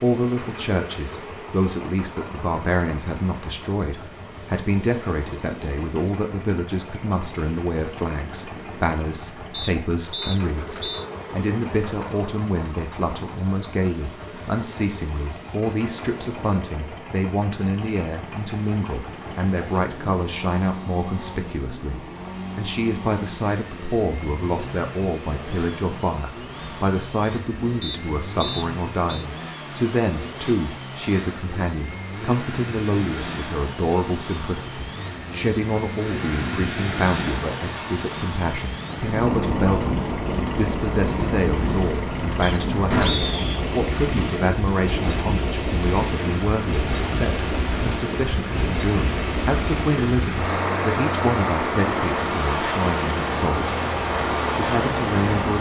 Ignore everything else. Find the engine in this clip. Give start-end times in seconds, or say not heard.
0.2-55.5.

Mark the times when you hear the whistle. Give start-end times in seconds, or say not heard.
9.5-11.1, 27.8-29.2, 42.4-43.6.